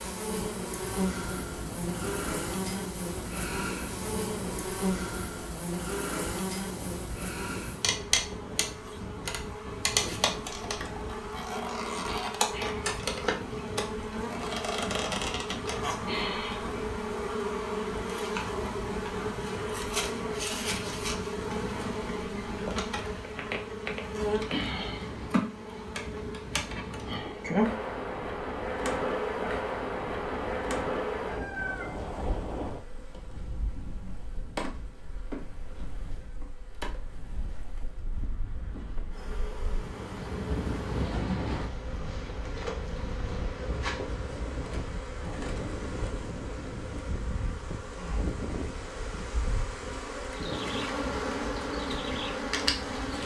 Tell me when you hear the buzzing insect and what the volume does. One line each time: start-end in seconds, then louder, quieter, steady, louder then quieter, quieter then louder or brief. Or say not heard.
0.0-53.2 quieter then louder.